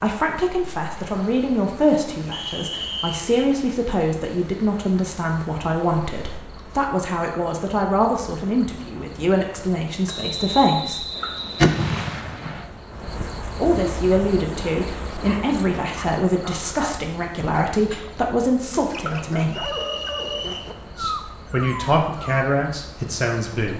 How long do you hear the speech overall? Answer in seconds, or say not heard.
20 s.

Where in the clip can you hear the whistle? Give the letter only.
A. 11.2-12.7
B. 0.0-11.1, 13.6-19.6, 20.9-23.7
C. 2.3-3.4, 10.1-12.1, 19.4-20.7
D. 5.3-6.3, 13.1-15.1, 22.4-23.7
C.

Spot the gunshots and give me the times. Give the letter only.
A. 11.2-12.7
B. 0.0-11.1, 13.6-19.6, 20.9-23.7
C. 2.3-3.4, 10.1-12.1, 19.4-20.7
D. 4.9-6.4
A.